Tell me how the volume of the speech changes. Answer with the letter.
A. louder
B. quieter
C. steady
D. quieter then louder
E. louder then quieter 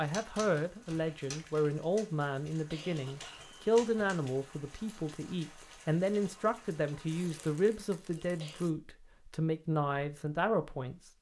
C.